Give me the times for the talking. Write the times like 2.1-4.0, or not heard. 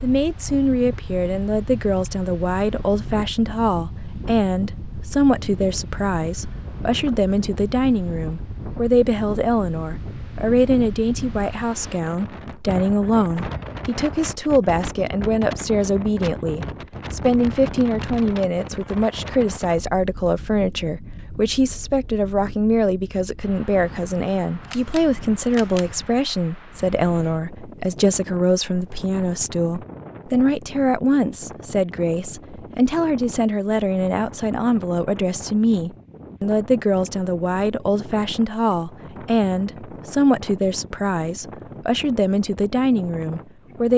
0.0-43.9.